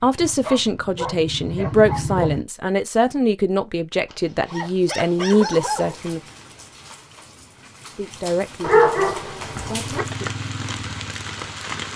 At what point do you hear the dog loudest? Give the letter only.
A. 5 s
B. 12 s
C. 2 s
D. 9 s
D.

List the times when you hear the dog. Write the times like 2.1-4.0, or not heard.
0.2-2.3, 4.0-6.0, 8.6-10.1.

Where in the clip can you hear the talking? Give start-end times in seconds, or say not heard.
0.0-6.2, 8.0-10.2.